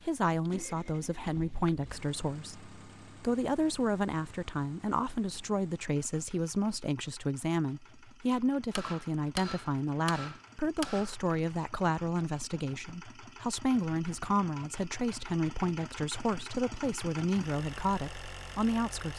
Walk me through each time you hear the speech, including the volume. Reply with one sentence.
The speech can be heard from 0.0 to 19.1 s, at a steady volume.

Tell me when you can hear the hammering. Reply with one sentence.
You can hear the hammering from 8.8 to 11.2 s.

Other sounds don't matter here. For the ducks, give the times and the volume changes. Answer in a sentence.
The ducks can't be heard in this clip.